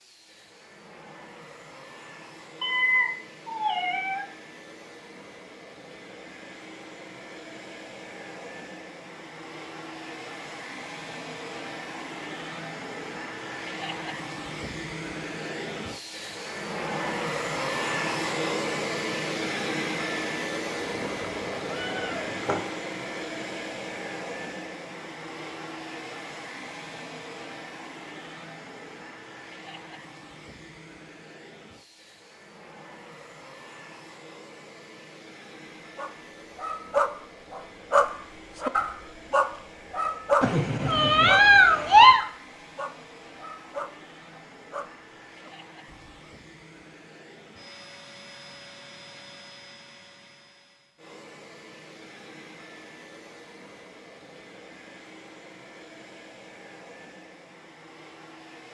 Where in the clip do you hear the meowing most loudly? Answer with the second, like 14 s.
42 s.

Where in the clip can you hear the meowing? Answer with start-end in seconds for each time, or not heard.
2.6-4.2, 20.8-22.6, 40.4-42.2.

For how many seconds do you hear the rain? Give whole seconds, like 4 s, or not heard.
not heard.